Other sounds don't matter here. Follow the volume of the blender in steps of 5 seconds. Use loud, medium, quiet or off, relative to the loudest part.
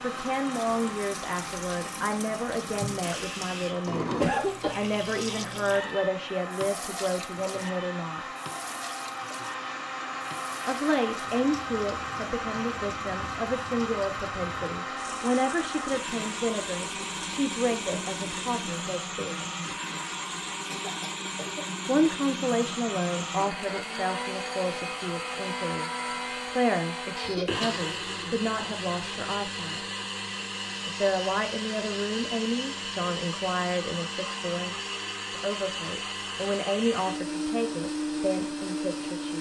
medium, medium, loud, loud, loud, loud, loud, loud.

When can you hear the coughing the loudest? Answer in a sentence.
The volume of the coughing peaks at 4 seconds.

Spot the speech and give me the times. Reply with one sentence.
The speech can be heard from 0.0 to 8.2 s, from 10.7 to 19.4 s, from 21.9 to 29.8 s and from 30.9 to 39.3 s.